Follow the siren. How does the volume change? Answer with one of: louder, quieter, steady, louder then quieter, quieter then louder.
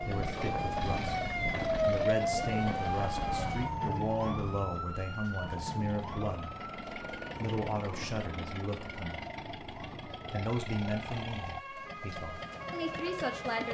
quieter then louder.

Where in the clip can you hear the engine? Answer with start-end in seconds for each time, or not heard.
0.0-13.6.